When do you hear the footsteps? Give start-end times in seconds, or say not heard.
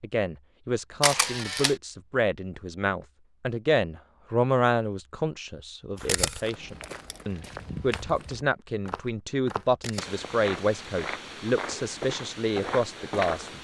6.0-13.5.